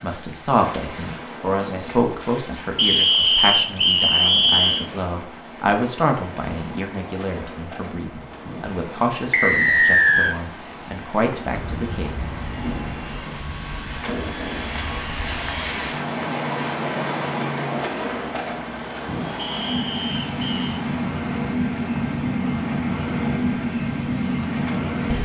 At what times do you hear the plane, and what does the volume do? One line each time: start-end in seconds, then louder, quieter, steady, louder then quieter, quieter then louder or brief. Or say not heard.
11.5-25.2 louder.